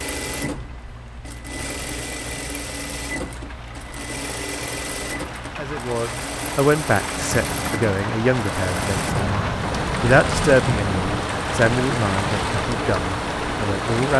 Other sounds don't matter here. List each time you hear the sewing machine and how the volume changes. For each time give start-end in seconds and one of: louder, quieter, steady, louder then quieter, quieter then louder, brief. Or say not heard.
0.0-14.1 steady.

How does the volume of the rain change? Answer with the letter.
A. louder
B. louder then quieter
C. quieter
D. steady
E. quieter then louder
A.